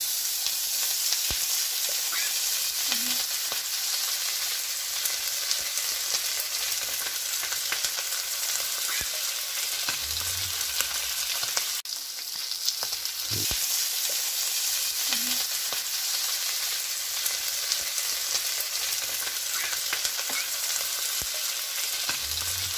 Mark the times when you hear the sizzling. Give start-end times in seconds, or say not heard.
0.0-22.7.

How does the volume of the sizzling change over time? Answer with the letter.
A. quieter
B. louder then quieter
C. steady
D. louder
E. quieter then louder
C.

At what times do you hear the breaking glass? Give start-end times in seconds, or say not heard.
not heard.